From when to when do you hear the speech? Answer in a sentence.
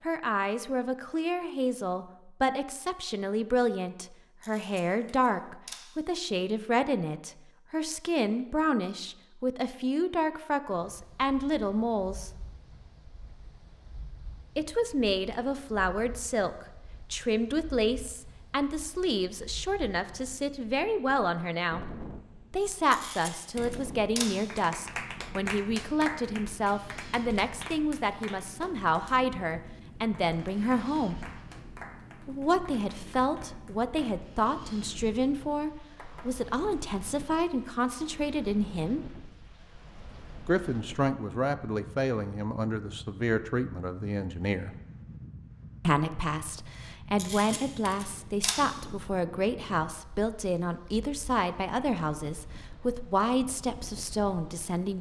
You can hear the speech from 0.0 to 12.3 s, from 14.6 to 21.9 s, from 22.5 to 31.1 s, from 32.2 to 39.1 s, from 40.5 to 44.8 s and from 45.8 to 54.9 s.